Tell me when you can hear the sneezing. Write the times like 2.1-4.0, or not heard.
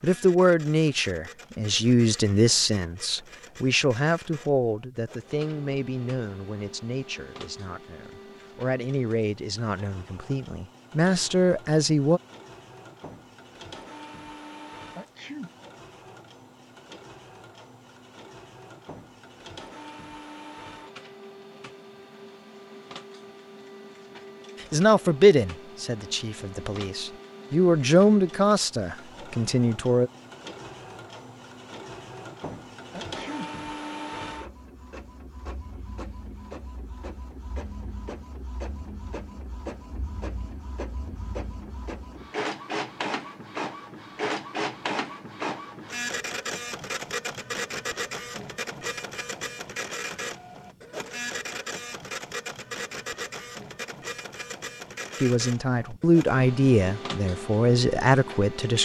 14.9-15.5, 32.9-33.5.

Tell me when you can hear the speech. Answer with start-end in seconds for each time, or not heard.
0.0-12.2, 24.6-30.1, 55.2-58.8.